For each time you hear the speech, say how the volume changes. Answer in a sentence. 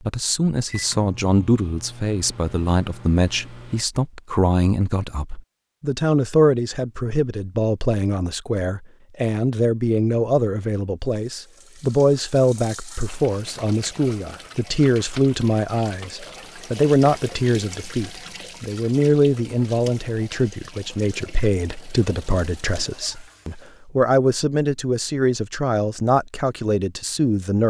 You can hear the speech from 0.0 to 27.6 s, at a steady volume.